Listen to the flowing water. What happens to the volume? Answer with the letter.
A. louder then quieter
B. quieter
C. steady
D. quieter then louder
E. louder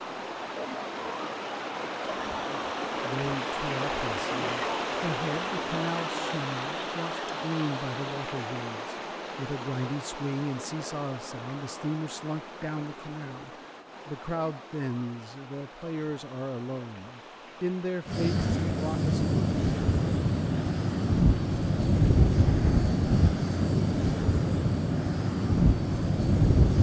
B.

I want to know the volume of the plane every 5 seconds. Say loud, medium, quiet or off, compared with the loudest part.
off, off, off, loud, loud, loud.